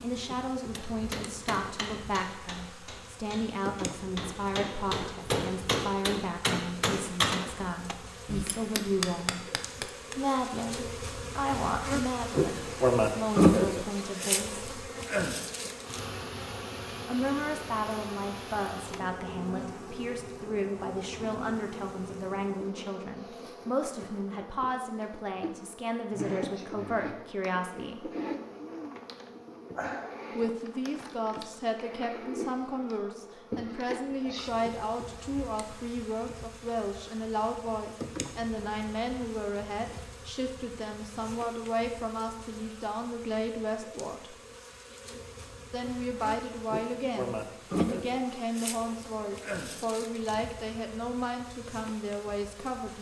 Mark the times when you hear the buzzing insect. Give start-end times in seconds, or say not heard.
0.0-52.9.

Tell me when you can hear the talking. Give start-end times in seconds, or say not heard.
0.0-9.4, 10.2-14.7, 17.1-28.1, 30.4-44.4, 45.7-52.9.